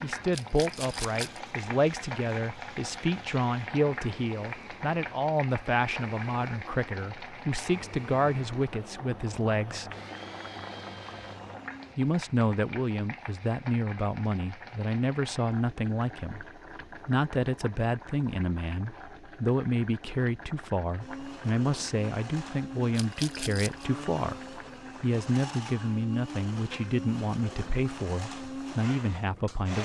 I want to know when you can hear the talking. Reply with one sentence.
You can hear the talking from 0.0 to 9.9 s and from 11.9 to 29.8 s.